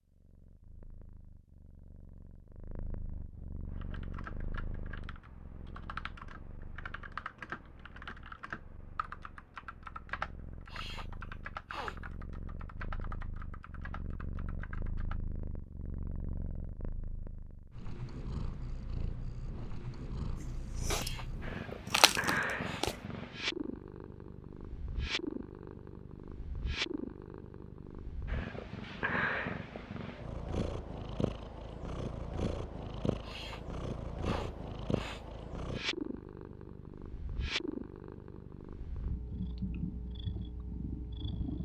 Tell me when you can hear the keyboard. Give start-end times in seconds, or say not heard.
3.6-15.2.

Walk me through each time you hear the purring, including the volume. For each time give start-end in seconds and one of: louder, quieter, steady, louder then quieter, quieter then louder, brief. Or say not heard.
0.0-41.6 louder.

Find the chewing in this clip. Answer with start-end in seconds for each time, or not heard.
20.4-22.9.